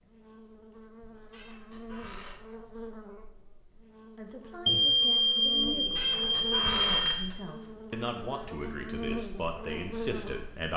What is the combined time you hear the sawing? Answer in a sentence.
You can't hear the sawing here.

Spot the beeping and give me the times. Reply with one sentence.
The beeping can be heard from 4.7 to 7.2 s.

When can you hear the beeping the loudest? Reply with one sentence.
The volume of the beeping peaks at 5 seconds.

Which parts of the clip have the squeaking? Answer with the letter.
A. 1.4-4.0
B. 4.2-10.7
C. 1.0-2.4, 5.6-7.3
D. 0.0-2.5
C.